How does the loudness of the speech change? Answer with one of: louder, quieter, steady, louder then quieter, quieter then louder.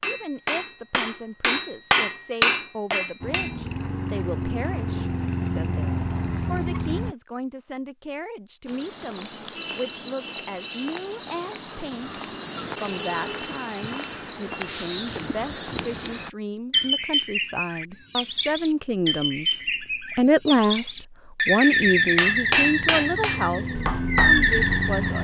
louder.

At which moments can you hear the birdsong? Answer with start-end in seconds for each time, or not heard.
8.7-25.2.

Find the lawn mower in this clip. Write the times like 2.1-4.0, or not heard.
3.2-7.2, 21.8-25.2.